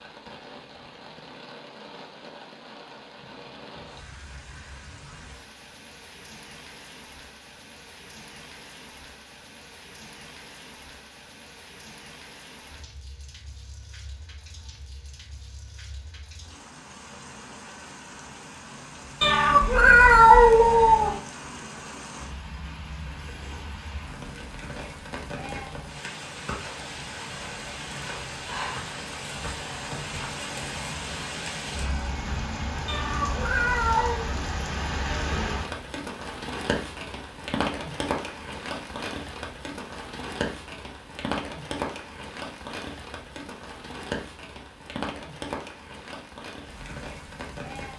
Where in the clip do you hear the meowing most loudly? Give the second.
20 s.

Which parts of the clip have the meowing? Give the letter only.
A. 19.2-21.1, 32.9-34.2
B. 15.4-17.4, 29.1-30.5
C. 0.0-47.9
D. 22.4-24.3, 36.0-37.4
A.